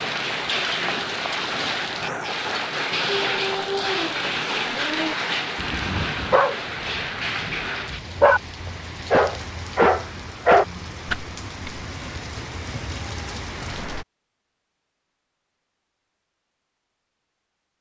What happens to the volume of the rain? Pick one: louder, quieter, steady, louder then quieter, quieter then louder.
quieter.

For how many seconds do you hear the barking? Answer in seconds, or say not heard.
8 s.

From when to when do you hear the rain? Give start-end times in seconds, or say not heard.
0.0-14.1.